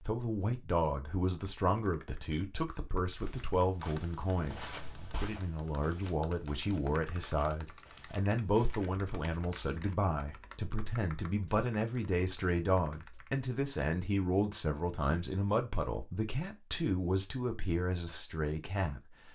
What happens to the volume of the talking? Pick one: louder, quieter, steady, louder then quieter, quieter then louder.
steady.